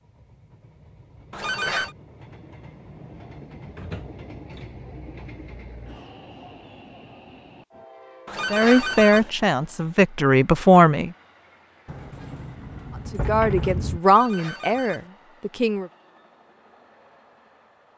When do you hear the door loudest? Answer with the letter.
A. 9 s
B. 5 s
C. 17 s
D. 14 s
D.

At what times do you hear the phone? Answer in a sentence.
You can hear the phone from 1.3 to 1.9 s, from 8.2 to 9.3 s and from 14.0 to 15.1 s.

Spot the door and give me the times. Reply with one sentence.
The door can be heard from 3.8 to 4.7 s and from 11.8 to 14.0 s.